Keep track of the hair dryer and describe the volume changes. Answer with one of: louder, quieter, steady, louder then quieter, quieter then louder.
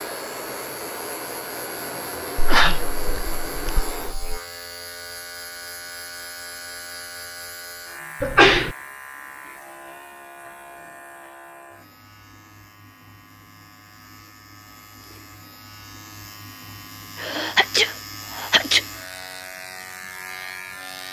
steady.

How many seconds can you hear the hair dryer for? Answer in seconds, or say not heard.
4 s.